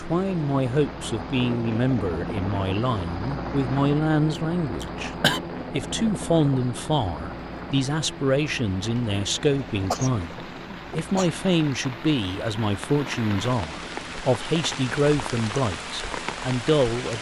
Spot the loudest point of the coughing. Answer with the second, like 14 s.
5 s.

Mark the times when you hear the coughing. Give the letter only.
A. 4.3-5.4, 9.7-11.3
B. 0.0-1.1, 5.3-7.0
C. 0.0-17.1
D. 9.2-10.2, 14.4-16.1
A.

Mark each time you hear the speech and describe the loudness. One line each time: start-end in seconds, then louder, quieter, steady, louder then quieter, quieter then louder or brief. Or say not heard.
0.0-17.1 steady.